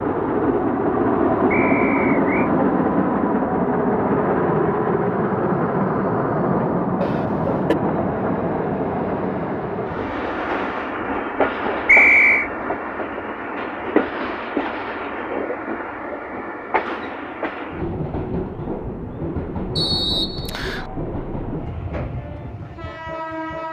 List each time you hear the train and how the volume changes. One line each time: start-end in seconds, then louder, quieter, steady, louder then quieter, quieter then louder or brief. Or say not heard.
0.0-23.6 quieter.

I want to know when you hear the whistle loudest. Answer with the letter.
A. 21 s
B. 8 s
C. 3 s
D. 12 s
D.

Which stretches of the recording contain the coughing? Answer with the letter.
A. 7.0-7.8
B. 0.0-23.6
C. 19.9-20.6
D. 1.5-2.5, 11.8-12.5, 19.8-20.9
A.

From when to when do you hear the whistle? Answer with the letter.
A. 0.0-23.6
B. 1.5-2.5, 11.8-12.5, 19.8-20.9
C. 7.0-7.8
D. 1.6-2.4
B.